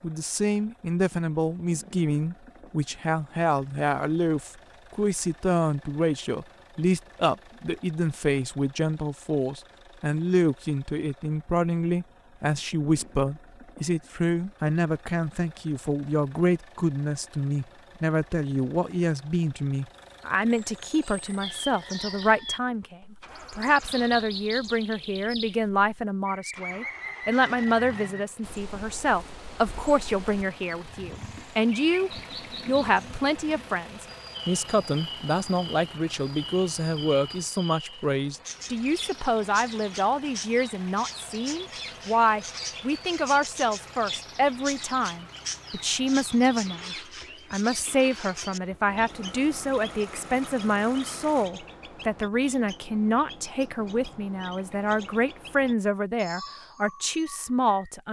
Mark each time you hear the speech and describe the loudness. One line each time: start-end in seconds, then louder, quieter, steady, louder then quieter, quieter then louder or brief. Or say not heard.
0.0-58.0 steady.